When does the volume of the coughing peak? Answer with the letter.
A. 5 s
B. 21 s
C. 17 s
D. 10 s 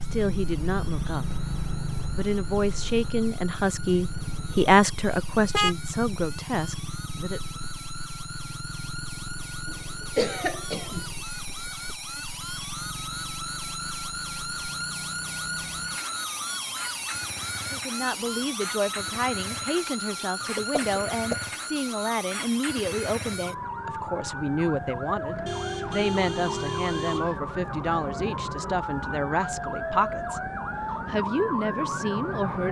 D.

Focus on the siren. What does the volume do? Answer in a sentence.
The volume of the siren goes up.